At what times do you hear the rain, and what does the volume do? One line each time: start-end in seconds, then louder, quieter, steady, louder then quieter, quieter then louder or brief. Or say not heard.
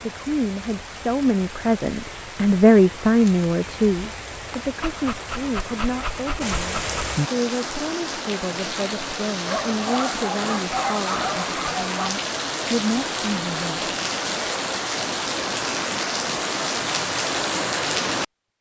0.0-18.2 louder.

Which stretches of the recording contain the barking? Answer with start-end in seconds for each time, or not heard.
4.8-7.2, 9.4-12.2.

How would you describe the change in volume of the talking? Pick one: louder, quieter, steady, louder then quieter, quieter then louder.
quieter.